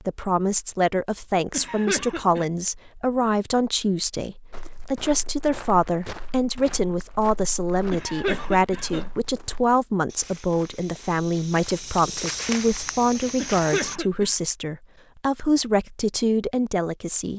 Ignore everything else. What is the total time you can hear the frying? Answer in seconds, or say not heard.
not heard.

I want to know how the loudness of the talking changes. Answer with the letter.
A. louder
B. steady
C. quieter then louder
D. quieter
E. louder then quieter
B.